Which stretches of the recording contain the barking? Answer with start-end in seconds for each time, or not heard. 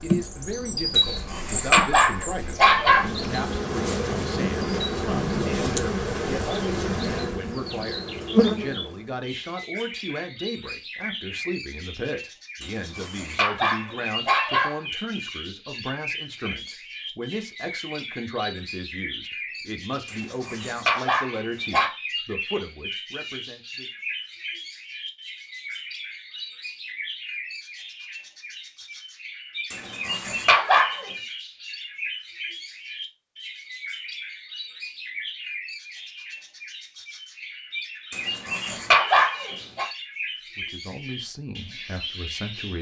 0.9-3.1, 12.6-14.8, 20.1-21.9, 29.7-31.1, 38.1-39.9.